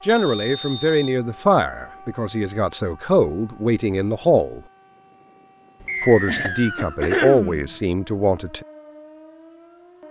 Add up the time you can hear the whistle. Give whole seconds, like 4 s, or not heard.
2 s.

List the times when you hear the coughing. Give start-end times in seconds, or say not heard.
5.8-7.7.